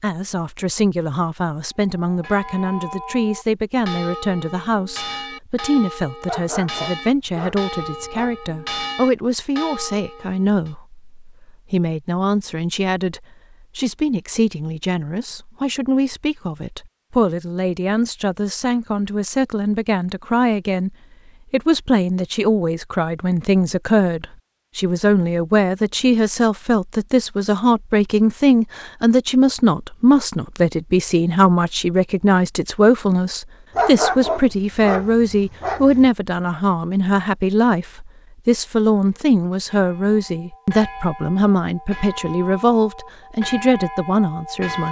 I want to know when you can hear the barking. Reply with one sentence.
The barking can be heard from 6.2 to 8.3 s and from 33.8 to 36.1 s.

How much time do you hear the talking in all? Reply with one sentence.
The talking can be heard for 45 seconds in total.